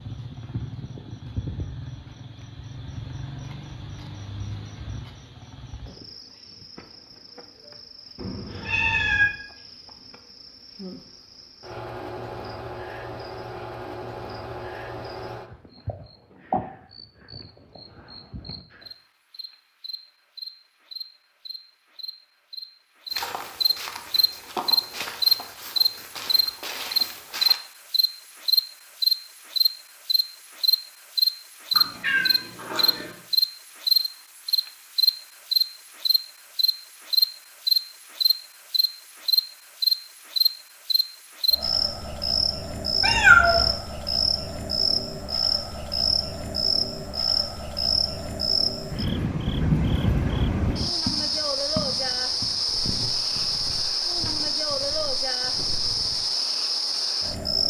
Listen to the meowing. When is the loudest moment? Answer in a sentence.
The loudest moment of the meowing is at 43 seconds.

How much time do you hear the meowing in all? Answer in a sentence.
The meowing can be heard for 3 seconds in total.